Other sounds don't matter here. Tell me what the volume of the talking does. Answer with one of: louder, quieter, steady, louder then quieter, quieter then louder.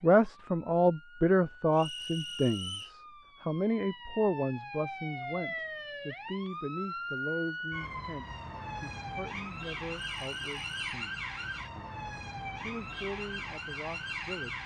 quieter.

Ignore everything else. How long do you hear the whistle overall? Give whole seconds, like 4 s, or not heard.
2 s.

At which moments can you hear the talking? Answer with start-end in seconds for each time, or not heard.
0.0-14.6.